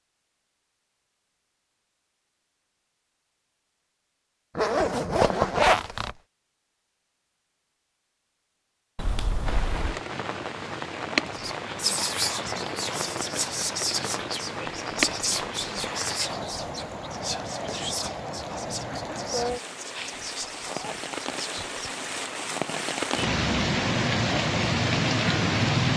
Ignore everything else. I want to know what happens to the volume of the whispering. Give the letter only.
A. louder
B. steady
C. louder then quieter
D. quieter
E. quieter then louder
D.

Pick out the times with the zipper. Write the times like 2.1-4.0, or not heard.
4.5-6.1, 8.9-10.0, 20.2-21.7.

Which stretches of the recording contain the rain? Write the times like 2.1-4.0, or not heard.
9.4-25.9.